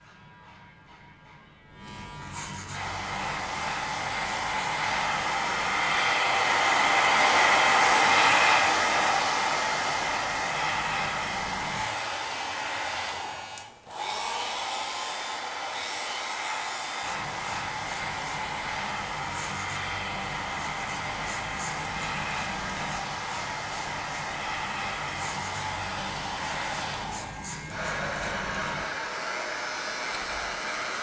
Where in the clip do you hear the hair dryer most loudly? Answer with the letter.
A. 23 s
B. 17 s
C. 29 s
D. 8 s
D.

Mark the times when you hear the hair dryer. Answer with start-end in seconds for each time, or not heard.
2.7-30.9.